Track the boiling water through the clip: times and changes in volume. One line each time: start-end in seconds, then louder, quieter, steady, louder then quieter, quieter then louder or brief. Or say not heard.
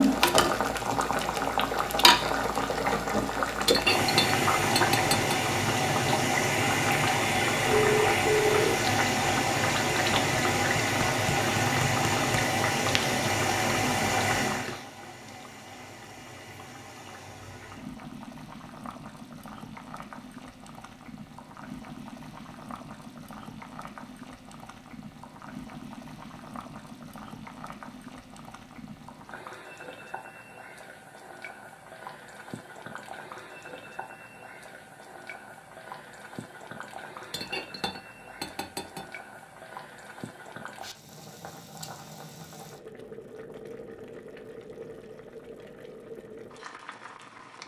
0.0-47.6 quieter.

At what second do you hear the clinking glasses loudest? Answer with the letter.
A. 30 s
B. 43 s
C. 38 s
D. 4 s
D.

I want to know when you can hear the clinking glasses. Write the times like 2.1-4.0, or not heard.
3.6-5.4, 37.3-39.0.